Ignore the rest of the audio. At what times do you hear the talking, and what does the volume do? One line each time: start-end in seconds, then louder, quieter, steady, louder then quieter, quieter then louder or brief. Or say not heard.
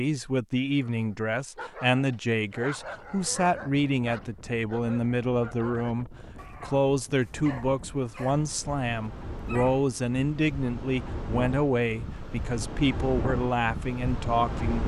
0.0-14.8 steady.